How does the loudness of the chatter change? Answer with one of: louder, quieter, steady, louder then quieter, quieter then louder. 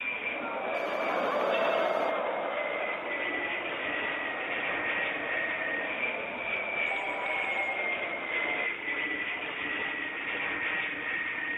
quieter.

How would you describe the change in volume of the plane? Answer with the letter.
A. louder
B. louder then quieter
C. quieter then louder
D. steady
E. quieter
A.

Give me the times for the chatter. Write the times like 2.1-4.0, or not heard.
0.1-8.7.